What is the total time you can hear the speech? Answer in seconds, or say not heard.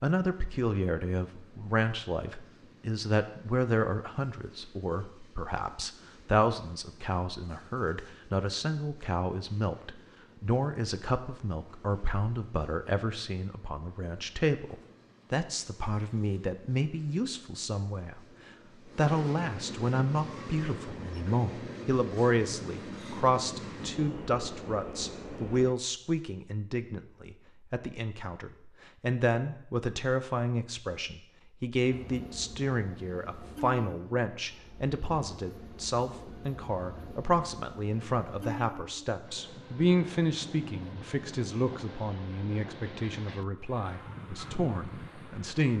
45 s.